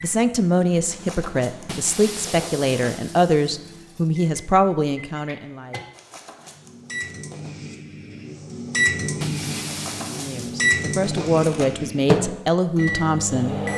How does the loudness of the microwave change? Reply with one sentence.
The loudness of the microwave goes up.